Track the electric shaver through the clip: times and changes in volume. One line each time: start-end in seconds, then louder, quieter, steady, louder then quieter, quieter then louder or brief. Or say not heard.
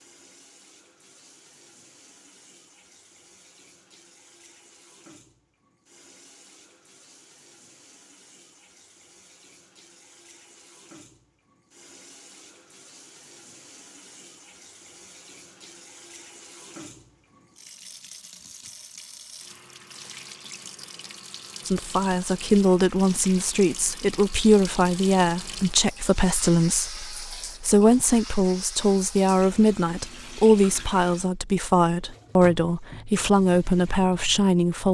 not heard.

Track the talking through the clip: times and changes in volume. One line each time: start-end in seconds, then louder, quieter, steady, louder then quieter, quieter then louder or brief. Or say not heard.
21.6-34.8 steady.